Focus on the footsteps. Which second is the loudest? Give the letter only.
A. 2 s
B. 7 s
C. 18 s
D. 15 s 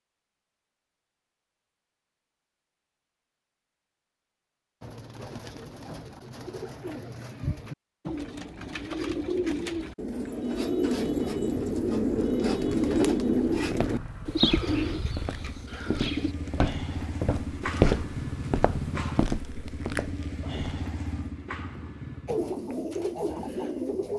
C.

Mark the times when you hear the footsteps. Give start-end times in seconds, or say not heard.
13.5-20.8.